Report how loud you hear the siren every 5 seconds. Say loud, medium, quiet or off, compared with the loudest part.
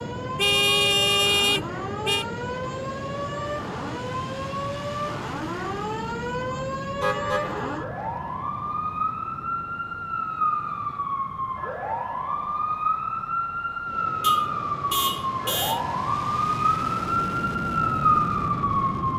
medium, medium, loud, loud.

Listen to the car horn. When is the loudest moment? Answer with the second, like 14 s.
1 s.